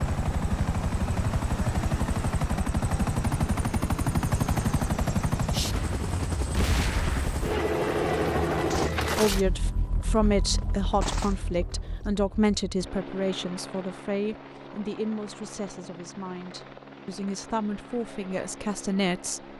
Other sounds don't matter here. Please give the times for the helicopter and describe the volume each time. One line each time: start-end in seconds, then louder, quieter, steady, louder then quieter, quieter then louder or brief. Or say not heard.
0.0-19.5 quieter.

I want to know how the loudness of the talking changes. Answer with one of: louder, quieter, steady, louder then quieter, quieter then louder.
quieter then louder.